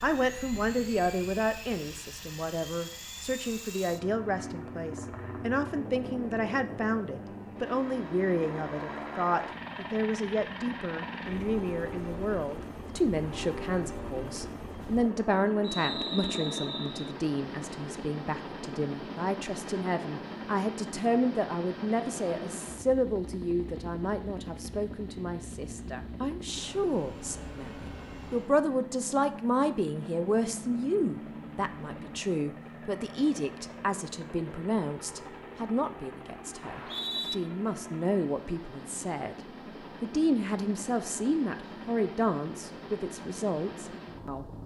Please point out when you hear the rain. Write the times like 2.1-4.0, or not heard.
not heard.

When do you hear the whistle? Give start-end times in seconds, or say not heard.
15.6-17.1, 36.6-37.4.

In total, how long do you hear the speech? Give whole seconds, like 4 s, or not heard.
44 s.